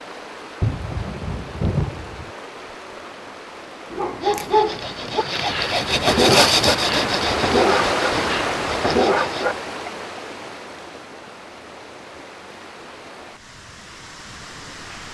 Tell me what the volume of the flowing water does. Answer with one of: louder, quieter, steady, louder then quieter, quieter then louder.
louder then quieter.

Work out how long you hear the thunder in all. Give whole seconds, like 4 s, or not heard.
2 s.